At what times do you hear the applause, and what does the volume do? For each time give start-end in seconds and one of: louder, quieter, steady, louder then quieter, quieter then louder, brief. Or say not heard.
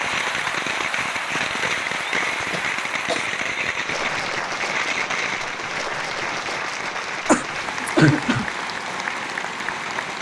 0.0-10.1 steady.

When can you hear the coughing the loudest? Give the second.
8 s.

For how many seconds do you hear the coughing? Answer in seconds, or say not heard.
2 s.